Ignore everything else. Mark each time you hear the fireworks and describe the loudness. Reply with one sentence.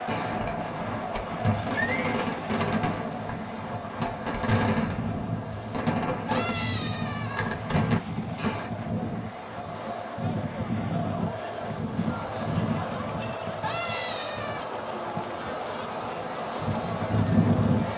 The fireworks can be heard from 0.1 to 8.7 s, at a steady volume.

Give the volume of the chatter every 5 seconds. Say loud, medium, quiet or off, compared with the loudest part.
loud, medium, loud, loud.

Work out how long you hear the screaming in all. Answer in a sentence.
The screaming can be heard for 3 seconds in total.